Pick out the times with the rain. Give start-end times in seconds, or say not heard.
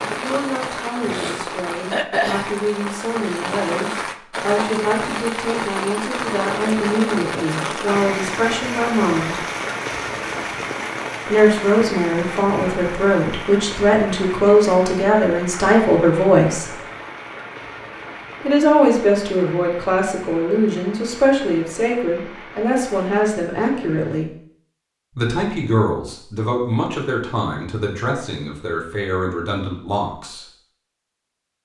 0.0-24.2.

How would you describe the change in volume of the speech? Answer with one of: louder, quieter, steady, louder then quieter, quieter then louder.
louder then quieter.